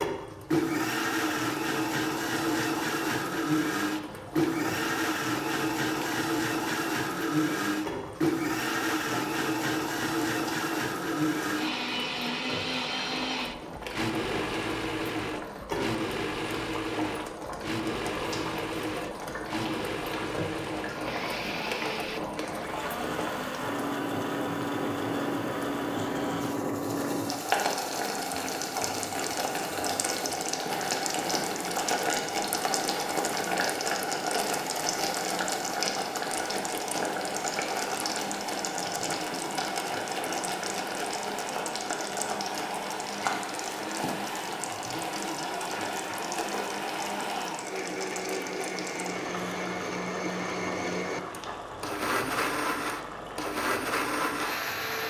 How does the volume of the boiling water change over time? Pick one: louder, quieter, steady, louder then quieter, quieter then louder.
louder then quieter.